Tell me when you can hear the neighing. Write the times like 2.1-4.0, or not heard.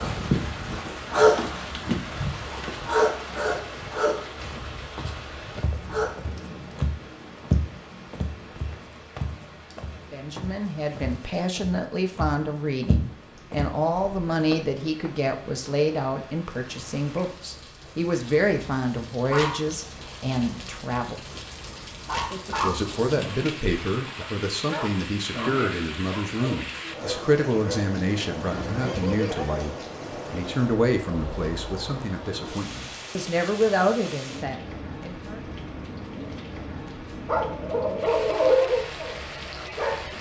28.5-29.6.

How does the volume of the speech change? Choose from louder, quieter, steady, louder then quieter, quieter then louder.
steady.